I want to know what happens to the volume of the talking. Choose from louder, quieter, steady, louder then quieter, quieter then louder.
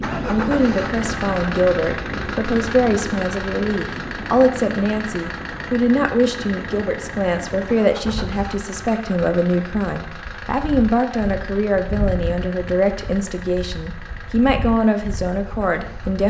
steady.